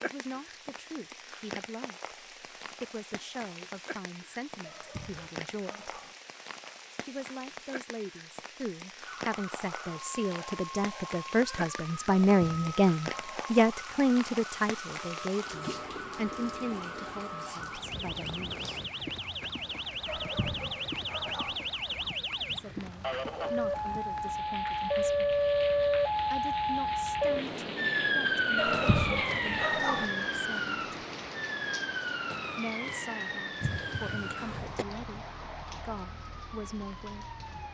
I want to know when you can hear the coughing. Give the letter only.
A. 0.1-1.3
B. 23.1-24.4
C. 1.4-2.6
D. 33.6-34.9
D.